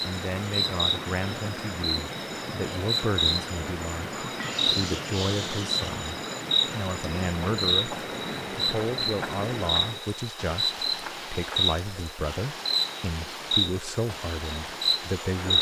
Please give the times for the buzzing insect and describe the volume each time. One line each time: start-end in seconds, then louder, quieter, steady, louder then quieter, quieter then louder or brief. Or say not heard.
0.0-15.5 steady.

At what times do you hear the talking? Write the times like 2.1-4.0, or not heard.
0.0-15.5.